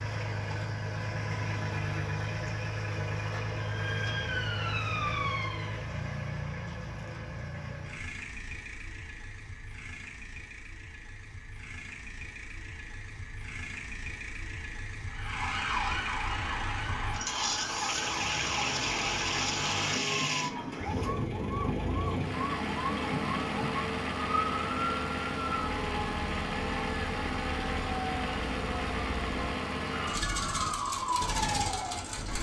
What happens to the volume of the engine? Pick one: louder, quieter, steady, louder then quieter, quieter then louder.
quieter then louder.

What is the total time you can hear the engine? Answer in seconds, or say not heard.
32 s.